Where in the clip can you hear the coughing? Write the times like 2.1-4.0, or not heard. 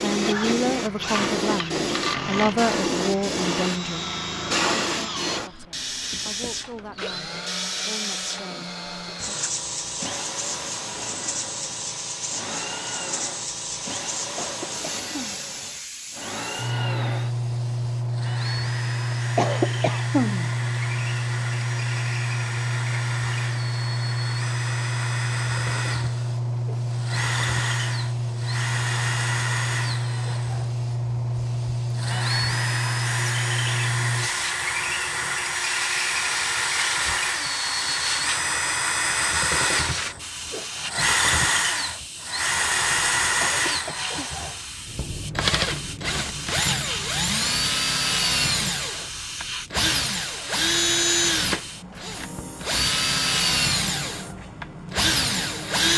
14.3-15.4, 19.1-20.5, 43.4-44.3.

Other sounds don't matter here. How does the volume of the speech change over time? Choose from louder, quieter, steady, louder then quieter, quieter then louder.
quieter.